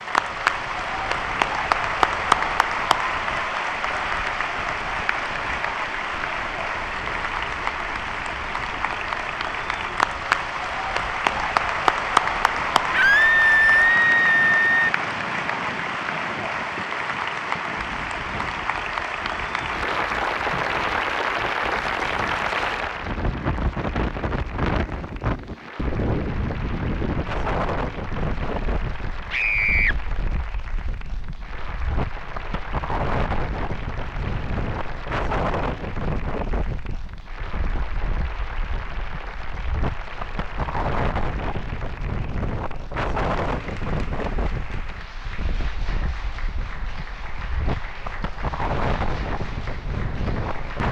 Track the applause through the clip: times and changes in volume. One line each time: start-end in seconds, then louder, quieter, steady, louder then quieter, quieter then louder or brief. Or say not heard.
0.0-50.8 quieter.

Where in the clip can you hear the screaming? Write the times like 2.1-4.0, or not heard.
12.9-14.9, 29.3-29.9.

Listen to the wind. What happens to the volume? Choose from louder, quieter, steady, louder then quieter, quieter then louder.
louder.